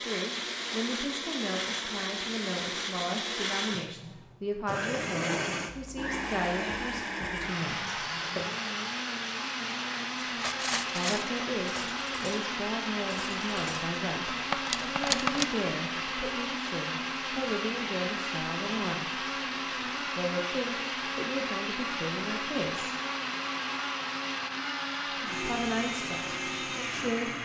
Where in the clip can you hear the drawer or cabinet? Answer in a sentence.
You can't hear the drawer or cabinet here.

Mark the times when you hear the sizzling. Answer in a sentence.
You can't hear the sizzling here.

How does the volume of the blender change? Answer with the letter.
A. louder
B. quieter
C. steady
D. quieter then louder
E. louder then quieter
C.